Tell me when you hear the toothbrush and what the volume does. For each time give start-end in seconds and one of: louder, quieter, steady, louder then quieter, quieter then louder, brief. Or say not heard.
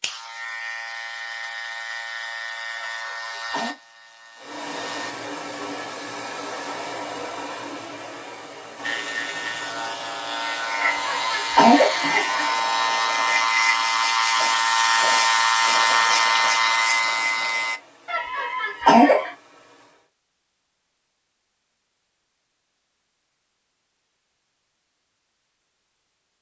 not heard.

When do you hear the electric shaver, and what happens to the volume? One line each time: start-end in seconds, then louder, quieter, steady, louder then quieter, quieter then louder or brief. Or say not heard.
0.0-5.2 quieter
8.8-17.8 louder.